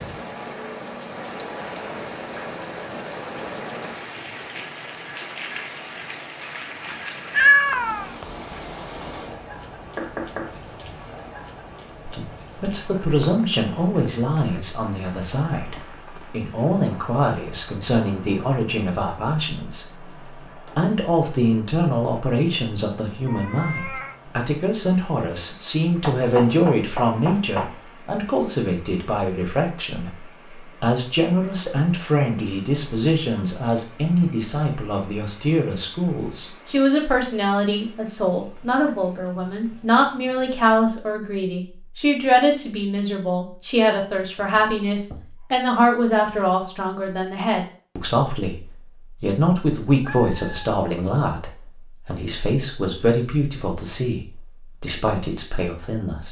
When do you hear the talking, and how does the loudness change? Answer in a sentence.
You can hear the talking from 12.1 to 20.1 s, at a steady volume; and from 20.8 to 56.2 s, at a steady volume.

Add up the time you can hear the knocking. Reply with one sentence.
You can hear the knocking for 4 seconds altogether.